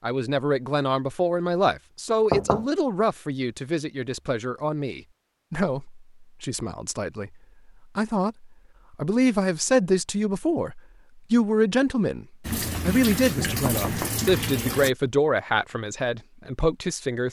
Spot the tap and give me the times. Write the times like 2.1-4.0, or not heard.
12.4-14.9.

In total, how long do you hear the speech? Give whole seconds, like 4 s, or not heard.
16 s.